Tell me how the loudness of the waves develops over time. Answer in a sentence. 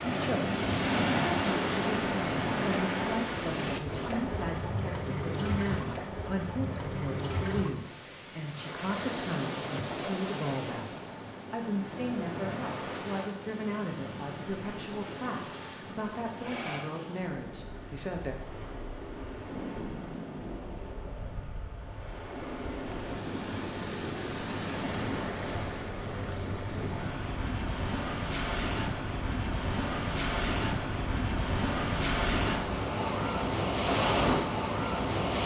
The loudness of the waves goes down, then up.